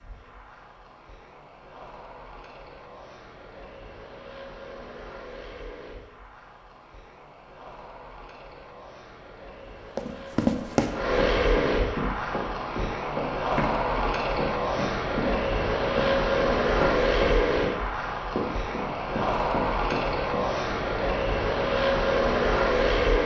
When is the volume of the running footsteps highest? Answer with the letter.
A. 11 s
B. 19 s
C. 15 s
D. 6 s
A.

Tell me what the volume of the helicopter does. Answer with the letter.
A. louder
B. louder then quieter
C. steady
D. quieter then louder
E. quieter
A.